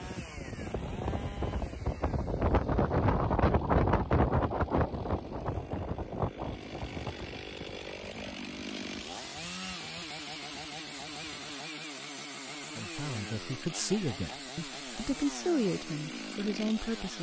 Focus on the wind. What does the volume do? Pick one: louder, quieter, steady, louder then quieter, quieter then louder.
louder then quieter.